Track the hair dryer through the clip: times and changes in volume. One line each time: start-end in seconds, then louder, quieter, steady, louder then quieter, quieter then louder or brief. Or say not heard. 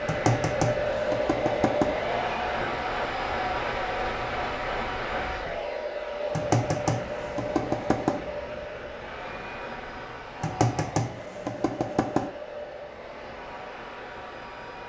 0.0-14.8 quieter.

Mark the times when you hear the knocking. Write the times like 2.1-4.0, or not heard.
0.1-1.9, 6.3-8.2, 10.4-12.3.